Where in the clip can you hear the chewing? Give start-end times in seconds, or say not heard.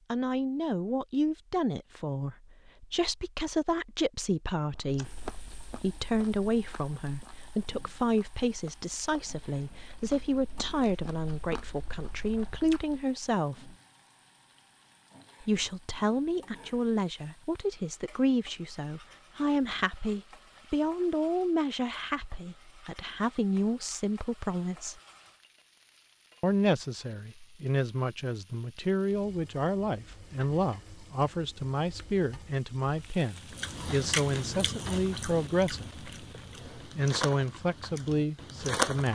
4.8-12.9, 33.4-39.0.